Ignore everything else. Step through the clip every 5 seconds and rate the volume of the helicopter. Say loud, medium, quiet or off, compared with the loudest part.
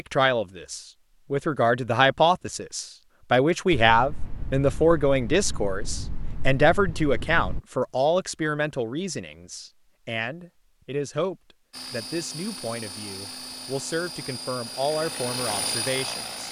off, off, medium, loud.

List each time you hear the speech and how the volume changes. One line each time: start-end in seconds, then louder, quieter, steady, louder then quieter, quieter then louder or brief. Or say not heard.
0.0-16.4 quieter.